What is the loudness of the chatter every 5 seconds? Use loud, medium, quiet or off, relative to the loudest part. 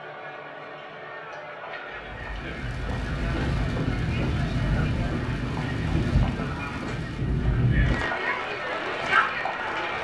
medium, loud.